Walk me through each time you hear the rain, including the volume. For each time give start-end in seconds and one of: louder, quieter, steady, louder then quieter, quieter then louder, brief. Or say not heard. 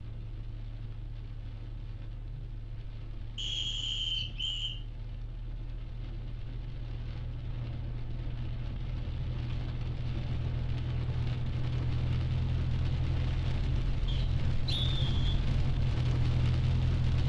0.0-17.2 louder.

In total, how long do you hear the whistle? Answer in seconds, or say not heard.
3 s.